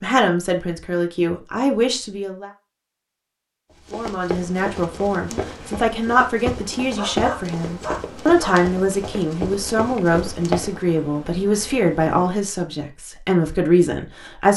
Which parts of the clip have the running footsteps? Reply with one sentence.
The running footsteps can be heard from 3.9 to 10.8 s.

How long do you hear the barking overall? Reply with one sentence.
You can hear the barking for 2 seconds altogether.